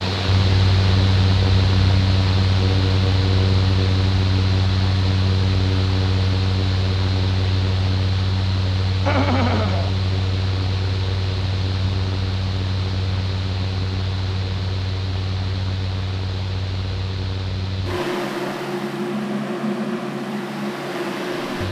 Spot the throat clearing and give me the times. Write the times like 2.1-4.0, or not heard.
9.1-9.9.